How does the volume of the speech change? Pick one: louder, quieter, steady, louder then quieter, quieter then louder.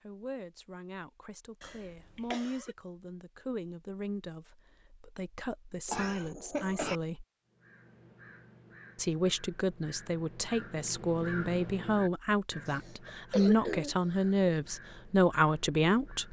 louder.